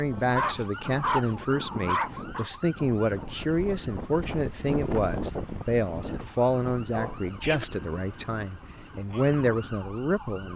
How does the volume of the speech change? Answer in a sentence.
The volume of the speech stays about the same.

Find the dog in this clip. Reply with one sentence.
You can hear the dog from 0.1 to 2.5 s and from 6.9 to 7.7 s.